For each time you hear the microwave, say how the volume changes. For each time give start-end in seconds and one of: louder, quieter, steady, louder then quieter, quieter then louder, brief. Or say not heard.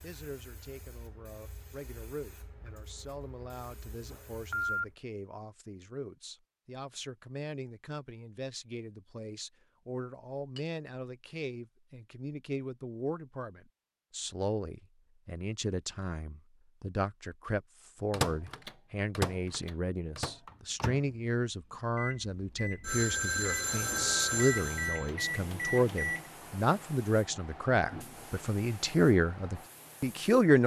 18.1-26.2 quieter then louder.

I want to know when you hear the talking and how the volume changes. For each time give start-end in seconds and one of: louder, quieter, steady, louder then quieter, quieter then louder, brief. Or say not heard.
0.0-30.6 louder.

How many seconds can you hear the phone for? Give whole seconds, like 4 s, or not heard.
3 s.